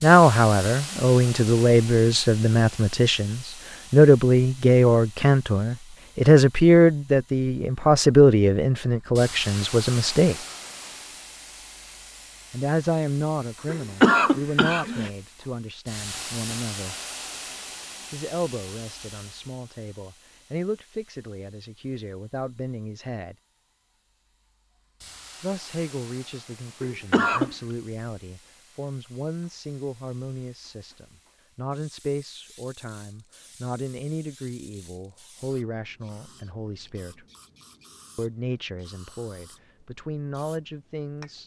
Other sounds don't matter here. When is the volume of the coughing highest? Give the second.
14 s.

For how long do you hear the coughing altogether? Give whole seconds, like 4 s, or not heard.
2 s.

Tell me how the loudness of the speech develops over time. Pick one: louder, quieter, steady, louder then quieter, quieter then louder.
quieter.